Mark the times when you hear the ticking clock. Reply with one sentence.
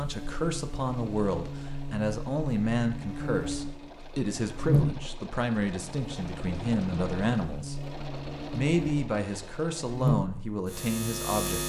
The ticking clock can't be heard in this clip.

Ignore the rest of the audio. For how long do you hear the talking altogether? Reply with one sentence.
You can hear the talking for 11 seconds altogether.